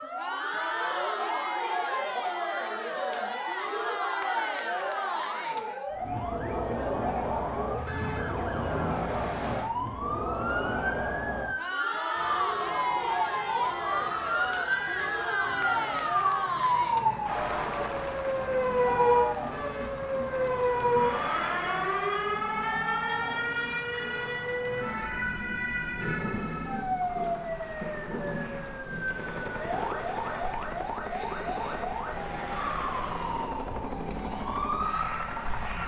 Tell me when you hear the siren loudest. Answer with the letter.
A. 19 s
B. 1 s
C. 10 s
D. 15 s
A.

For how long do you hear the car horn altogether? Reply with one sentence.
The car horn can be heard for 2 seconds in total.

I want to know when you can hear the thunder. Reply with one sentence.
You can hear the thunder from 25.9 to 29.4 s.